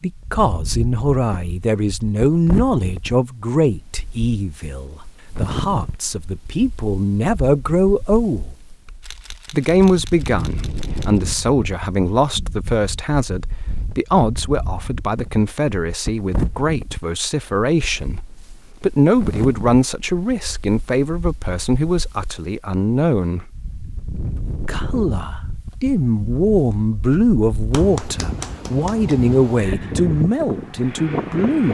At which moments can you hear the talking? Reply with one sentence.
You can hear the talking from 0.0 to 8.6 s, from 9.5 to 23.5 s and from 24.6 to 31.6 s.